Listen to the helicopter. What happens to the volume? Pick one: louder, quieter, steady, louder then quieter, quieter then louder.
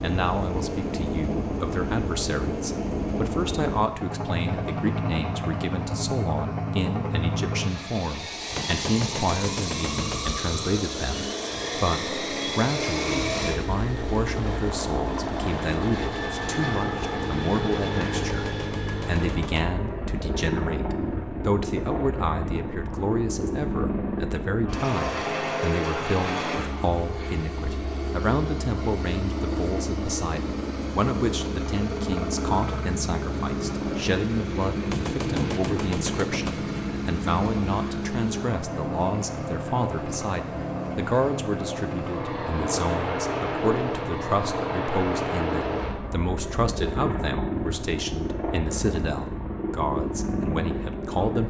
steady.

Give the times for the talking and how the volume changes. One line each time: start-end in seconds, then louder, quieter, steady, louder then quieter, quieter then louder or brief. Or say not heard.
0.0-51.4 steady.